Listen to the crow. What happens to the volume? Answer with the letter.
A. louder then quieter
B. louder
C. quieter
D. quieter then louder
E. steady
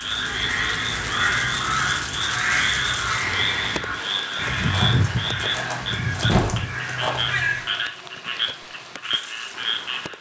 E.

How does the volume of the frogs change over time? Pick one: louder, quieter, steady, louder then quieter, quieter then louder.
steady.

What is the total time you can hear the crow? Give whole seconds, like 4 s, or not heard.
8 s.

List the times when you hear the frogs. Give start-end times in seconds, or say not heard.
0.0-10.1.